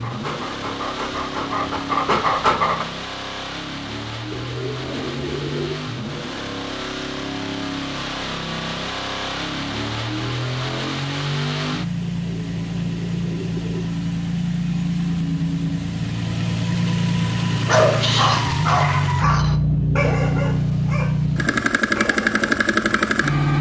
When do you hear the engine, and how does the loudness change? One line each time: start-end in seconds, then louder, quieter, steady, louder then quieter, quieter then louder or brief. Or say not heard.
0.0-23.5 louder.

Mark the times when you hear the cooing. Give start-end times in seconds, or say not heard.
4.3-5.8, 12.0-13.9.